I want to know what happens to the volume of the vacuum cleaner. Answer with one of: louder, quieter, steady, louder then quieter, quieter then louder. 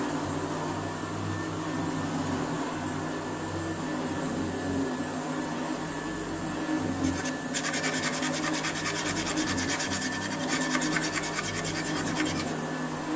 steady.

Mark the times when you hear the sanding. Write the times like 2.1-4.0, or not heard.
7.0-12.6.